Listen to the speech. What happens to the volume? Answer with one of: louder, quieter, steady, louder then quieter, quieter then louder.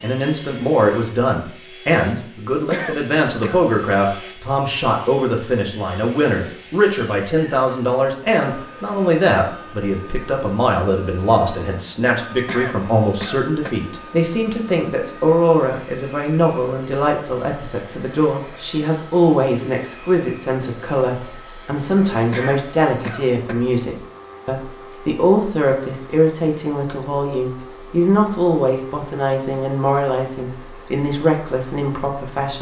steady.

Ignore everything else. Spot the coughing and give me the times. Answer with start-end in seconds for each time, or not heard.
2.7-3.6, 12.4-13.8, 22.3-23.6.